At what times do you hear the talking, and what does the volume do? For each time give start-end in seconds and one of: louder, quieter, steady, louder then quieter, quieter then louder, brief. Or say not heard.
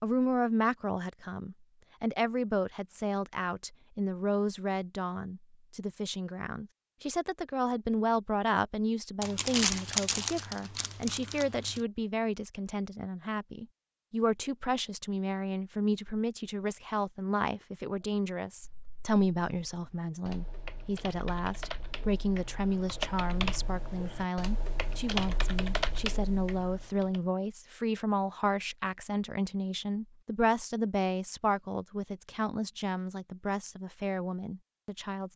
0.0-35.3 steady.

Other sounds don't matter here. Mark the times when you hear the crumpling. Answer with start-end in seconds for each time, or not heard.
9.2-11.8.